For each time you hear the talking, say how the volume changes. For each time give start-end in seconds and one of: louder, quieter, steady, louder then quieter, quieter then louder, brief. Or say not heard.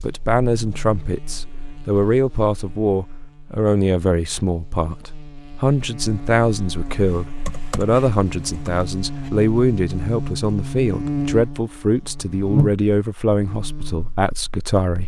0.0-15.0 steady.